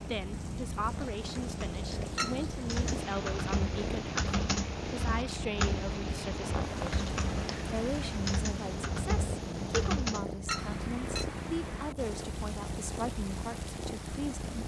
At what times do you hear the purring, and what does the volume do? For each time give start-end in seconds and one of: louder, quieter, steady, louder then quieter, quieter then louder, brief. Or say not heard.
0.0-14.6 steady.